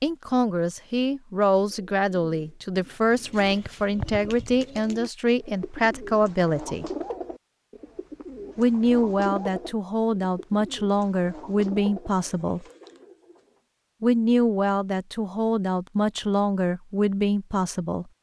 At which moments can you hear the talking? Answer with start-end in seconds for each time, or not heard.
0.0-6.8, 8.6-12.7, 14.0-18.1.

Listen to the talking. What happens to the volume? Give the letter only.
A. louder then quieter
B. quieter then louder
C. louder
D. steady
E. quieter
D.